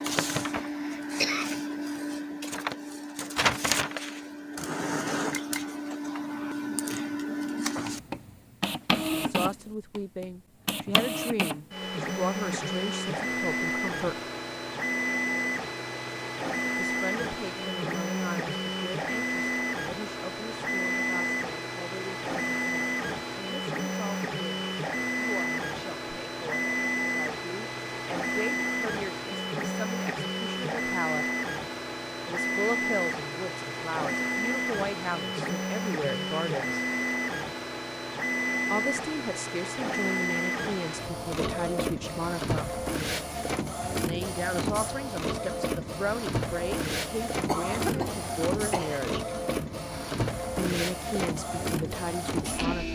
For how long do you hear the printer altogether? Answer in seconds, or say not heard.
53 s.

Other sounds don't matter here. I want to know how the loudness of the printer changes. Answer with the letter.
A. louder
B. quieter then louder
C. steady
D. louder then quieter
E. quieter
C.